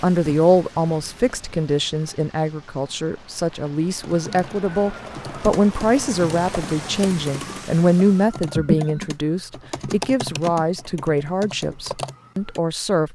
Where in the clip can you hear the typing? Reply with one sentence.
You can hear the typing from 4.0 to 12.6 s.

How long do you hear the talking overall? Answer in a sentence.
You can hear the talking for 13 seconds altogether.